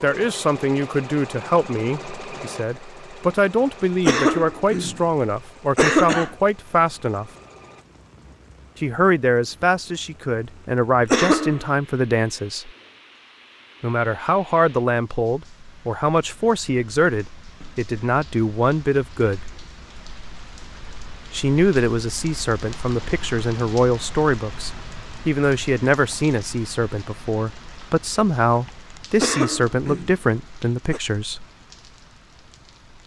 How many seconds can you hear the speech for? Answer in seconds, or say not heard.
27 s.